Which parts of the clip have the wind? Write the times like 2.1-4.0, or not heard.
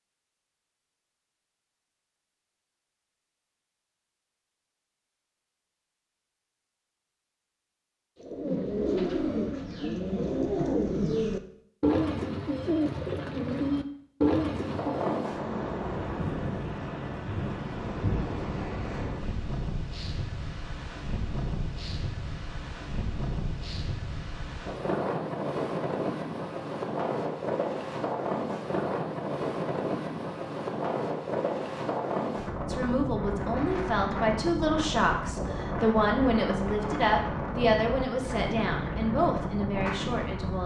14.5-40.6.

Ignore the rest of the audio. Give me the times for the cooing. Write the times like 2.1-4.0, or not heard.
8.2-15.2.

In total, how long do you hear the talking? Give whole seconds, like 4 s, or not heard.
8 s.